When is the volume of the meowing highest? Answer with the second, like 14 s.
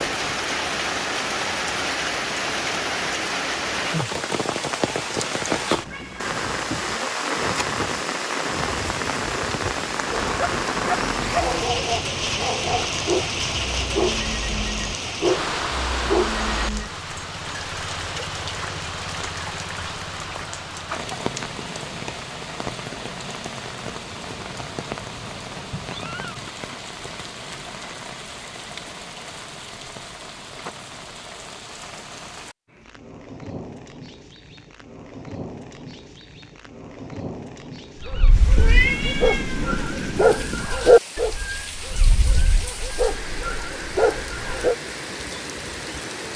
39 s.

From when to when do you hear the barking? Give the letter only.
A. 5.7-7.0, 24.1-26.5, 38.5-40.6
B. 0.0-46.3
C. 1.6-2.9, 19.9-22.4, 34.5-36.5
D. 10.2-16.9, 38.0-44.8
D.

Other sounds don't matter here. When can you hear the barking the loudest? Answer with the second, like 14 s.
41 s.